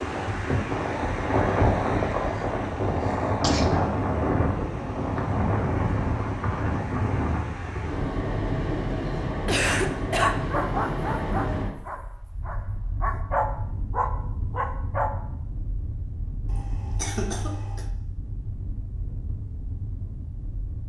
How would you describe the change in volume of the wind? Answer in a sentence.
The loudness of the wind goes down.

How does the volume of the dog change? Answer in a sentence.
The loudness of the dog goes down, then up.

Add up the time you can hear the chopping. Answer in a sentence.
The chopping can't be heard in this clip.